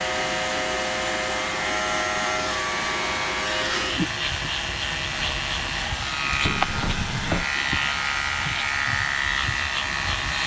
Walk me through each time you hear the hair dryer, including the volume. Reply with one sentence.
You can hear the hair dryer from 0.0 to 10.4 s, at a steady volume.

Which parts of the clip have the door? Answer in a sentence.
The door can be heard from 6.4 to 7.5 s.